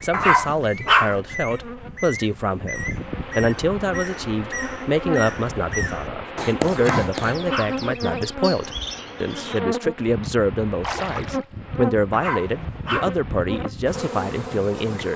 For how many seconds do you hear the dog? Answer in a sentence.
The dog can be heard for 3 seconds in total.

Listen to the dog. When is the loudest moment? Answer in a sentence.
The loudest moment of the dog is at 1 second.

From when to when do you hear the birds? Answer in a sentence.
The birds can be heard from 0.0 to 9.6 s.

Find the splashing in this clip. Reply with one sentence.
The splashing can be heard from 10.8 to 11.4 s.